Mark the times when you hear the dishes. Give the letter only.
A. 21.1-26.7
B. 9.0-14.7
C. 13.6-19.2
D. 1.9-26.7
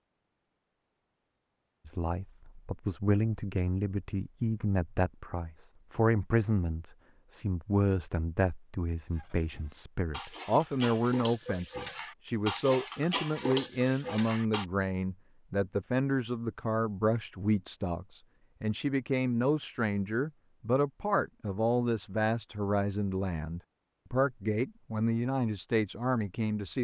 B.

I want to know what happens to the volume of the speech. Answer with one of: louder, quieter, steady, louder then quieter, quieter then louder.
steady.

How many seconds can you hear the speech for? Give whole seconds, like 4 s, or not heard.
25 s.